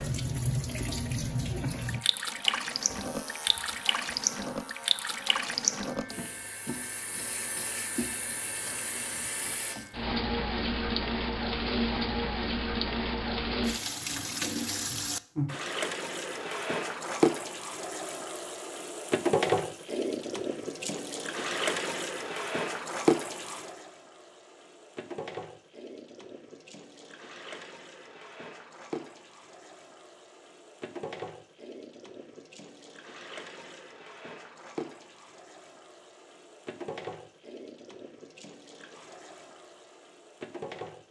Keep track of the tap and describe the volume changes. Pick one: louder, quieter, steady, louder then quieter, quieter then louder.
quieter.